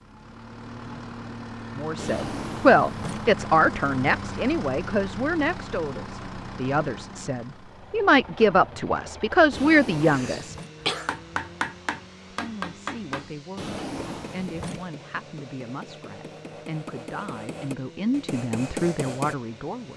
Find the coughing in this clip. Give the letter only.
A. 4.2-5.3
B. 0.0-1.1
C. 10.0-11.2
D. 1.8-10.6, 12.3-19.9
C.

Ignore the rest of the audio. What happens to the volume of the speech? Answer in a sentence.
The volume of the speech goes down, then up.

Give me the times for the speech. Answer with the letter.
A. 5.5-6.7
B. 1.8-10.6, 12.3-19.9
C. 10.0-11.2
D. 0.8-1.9
B.